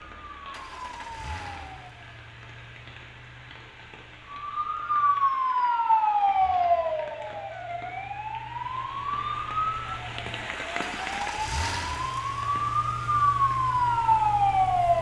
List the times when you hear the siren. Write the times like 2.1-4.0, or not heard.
0.1-1.8, 4.3-14.9.